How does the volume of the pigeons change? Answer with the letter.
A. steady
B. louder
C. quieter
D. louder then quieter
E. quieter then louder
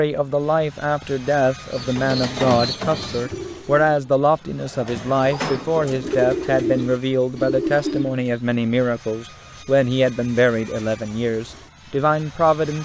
E.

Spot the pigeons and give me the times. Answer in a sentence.
The pigeons can be heard from 1.7 to 8.3 s.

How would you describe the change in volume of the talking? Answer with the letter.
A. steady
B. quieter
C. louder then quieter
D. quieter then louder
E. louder
A.